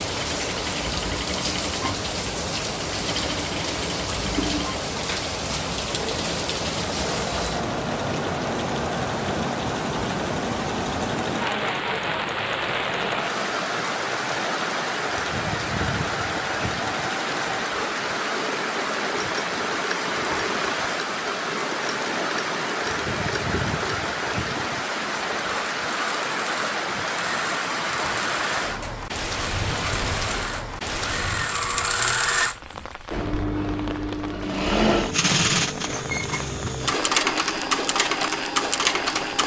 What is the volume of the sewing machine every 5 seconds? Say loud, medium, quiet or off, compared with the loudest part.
medium, medium, medium, medium, medium, medium, loud, loud.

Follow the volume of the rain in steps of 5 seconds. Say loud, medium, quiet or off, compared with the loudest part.
loud, loud, loud, loud, loud, loud, medium, medium.